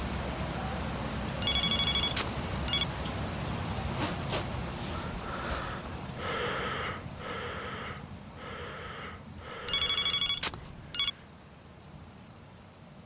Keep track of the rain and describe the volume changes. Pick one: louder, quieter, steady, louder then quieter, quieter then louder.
quieter.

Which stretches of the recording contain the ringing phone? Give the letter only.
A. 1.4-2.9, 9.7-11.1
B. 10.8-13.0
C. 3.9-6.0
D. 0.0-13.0
A.